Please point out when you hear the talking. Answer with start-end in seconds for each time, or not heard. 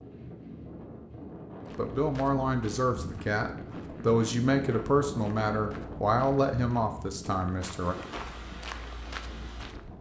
1.8-8.0.